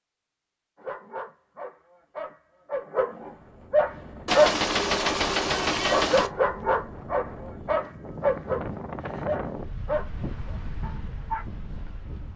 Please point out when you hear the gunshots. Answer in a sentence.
You can hear the gunshots from 4.2 to 6.3 s.